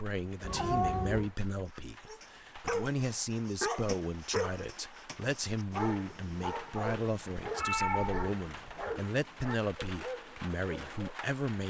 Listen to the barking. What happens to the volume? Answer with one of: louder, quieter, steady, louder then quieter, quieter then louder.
quieter.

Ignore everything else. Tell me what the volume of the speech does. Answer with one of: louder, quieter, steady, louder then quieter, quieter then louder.
steady.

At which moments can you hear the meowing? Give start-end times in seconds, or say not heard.
0.4-1.3, 7.4-8.9.